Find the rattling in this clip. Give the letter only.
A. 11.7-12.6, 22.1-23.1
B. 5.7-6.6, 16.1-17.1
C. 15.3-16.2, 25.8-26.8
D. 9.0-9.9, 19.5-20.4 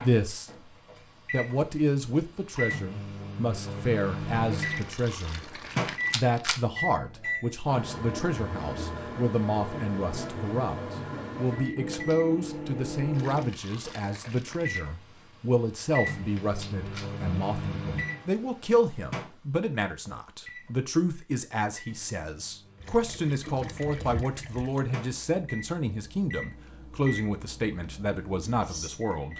B.